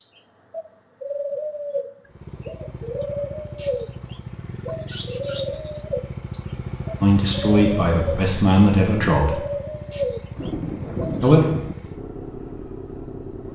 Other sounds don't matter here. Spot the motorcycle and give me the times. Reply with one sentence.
You can hear the motorcycle from 2.0 to 13.4 s.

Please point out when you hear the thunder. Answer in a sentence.
The thunder can be heard from 10.3 to 11.8 s.